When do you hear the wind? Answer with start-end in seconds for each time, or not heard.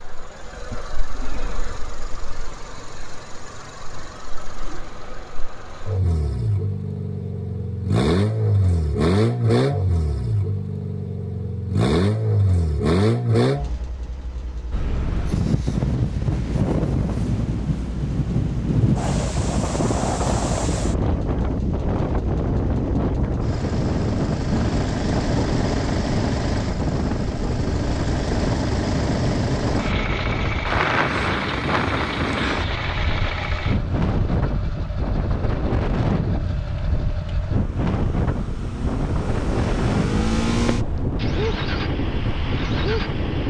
14.7-43.4.